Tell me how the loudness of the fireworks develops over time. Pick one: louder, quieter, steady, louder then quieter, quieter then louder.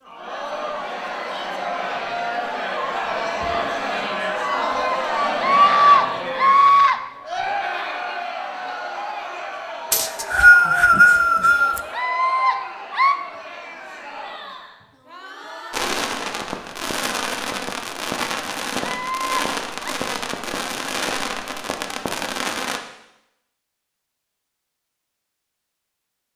steady.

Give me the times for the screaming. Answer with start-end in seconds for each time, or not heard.
4.4-7.0, 11.9-13.2, 18.8-19.9.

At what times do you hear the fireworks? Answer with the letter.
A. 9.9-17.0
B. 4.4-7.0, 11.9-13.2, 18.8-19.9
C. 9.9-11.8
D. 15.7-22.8
D.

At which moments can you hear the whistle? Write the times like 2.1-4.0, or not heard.
9.9-11.8.